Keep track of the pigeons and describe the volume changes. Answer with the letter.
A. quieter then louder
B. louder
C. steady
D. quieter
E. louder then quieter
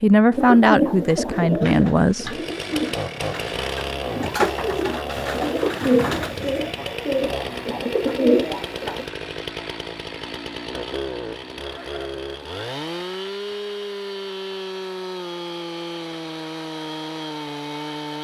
A.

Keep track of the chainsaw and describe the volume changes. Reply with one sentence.
The volume of the chainsaw stays about the same.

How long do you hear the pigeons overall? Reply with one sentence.
You can hear the pigeons for 9 seconds altogether.